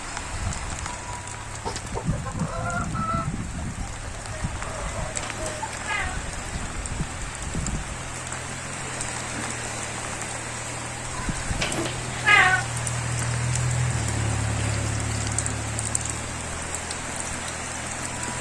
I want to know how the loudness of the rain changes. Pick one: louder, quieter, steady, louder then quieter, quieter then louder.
steady.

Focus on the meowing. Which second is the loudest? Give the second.
12 s.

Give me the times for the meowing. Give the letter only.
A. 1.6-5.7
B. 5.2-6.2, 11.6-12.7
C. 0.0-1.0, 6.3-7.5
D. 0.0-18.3
B.